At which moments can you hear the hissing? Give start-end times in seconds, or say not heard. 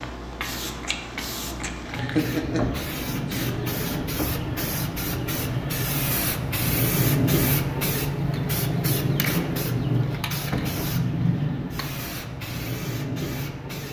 0.0-13.8.